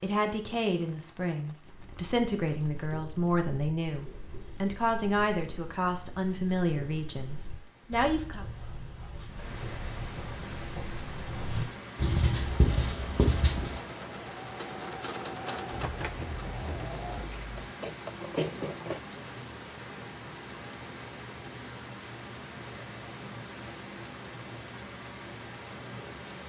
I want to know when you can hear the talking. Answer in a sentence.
The talking can be heard from 0.0 to 8.4 s.